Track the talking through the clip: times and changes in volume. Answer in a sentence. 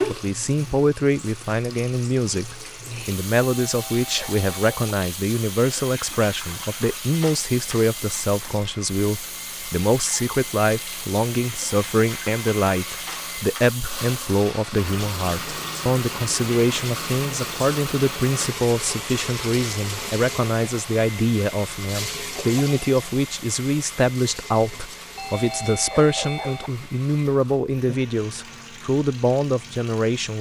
The talking can be heard from 0.1 to 30.3 s, at a steady volume.